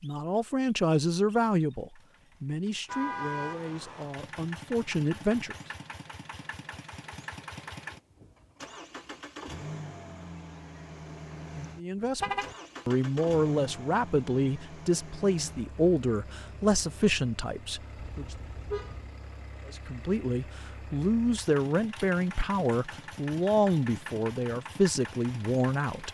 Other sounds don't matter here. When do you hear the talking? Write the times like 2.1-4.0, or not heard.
0.0-5.5, 11.8-18.2, 19.6-26.0.